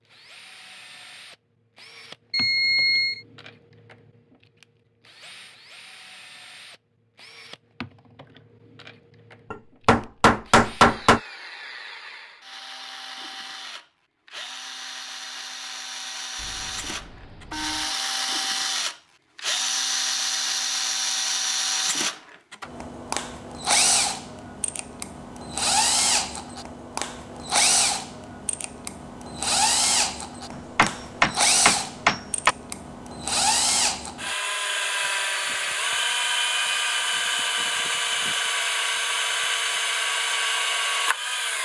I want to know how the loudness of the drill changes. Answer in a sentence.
The loudness of the drill goes up.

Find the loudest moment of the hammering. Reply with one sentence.
The loudest moment of the hammering is at 11 seconds.